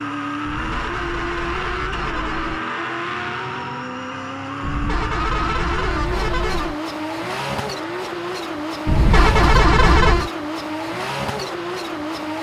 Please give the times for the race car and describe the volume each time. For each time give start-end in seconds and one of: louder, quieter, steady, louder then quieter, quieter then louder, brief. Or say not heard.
0.0-12.3 steady.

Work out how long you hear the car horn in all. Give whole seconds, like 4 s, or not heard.
6 s.